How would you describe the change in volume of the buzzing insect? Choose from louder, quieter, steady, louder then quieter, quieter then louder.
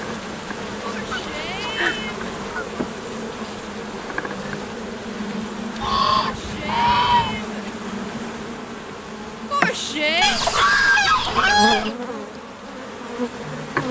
steady.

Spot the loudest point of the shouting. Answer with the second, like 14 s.
10 s.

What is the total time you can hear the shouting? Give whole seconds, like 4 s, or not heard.
4 s.